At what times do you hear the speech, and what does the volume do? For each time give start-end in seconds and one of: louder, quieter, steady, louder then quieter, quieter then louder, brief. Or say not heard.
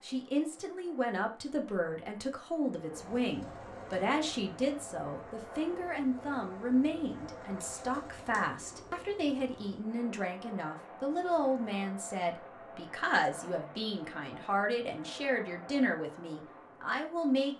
0.0-17.5 steady.